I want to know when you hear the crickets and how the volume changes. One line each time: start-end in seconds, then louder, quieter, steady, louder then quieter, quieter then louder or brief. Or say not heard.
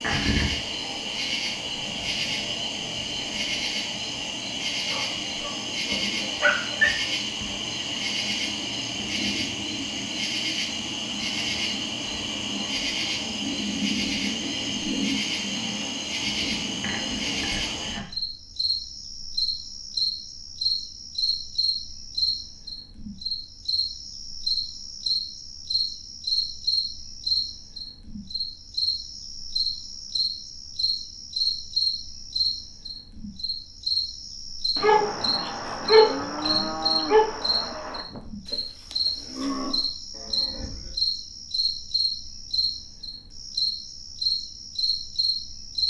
0.0-45.8 steady.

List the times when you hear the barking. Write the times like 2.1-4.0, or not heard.
4.9-6.9, 34.8-37.3.